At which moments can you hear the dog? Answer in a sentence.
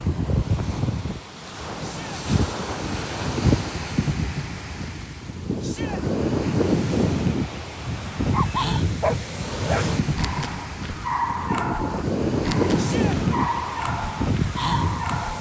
You can hear the dog from 8.3 to 15.3 s.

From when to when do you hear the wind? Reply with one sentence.
You can hear the wind from 0.0 to 15.3 s.